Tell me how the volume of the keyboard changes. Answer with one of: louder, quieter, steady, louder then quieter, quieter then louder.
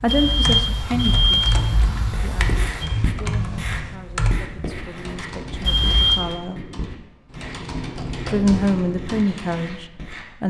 quieter then louder.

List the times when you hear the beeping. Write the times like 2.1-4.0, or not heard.
0.1-2.9, 5.6-6.2.